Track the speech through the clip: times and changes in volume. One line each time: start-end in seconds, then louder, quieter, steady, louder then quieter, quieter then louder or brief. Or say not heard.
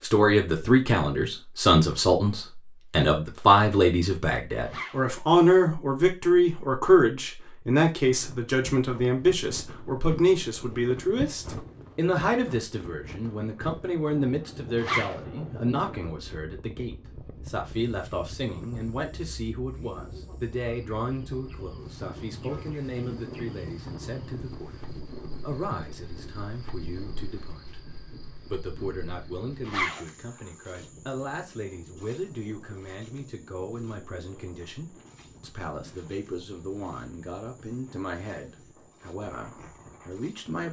0.0-40.6 quieter.